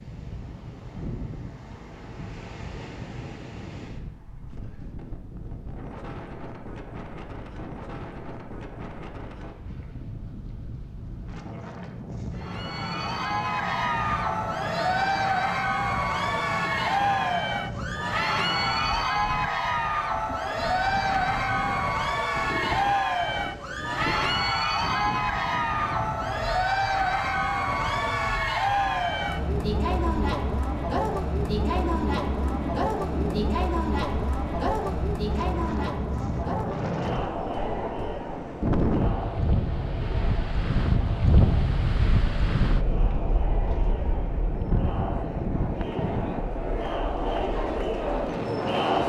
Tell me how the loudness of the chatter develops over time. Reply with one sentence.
The volume of the chatter goes down.